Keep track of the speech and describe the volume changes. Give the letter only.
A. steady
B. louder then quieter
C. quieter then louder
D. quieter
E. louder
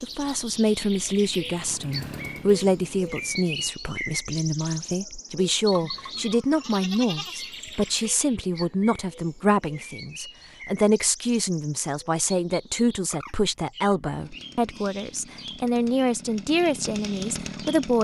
A.